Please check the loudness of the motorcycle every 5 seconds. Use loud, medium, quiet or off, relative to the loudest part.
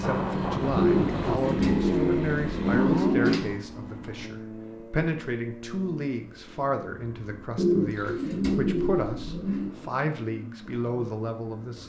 loud, quiet, quiet.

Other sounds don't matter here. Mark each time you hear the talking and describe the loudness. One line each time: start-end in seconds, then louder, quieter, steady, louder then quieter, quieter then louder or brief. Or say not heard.
0.0-11.8 steady.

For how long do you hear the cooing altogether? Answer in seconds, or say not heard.
5 s.